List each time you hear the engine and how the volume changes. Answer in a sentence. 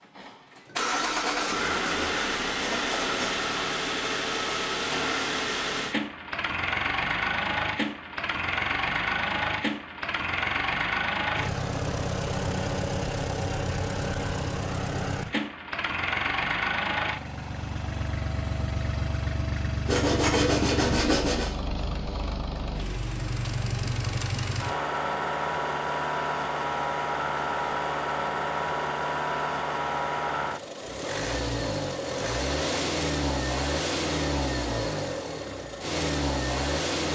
The engine can be heard from 0.0 to 37.0 s, at a steady volume.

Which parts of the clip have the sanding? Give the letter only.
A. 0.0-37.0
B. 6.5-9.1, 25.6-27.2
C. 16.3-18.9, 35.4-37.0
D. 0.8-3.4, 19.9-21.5
D.